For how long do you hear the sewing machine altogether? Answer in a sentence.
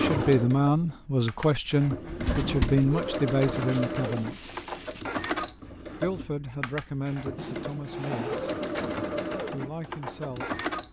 The sewing machine can be heard for 11 seconds in total.